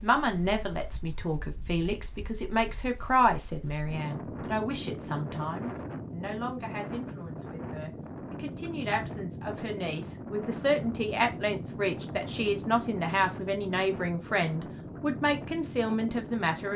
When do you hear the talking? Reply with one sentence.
You can hear the talking from 0.0 to 16.7 s.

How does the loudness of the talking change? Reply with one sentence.
The loudness of the talking goes down, then up.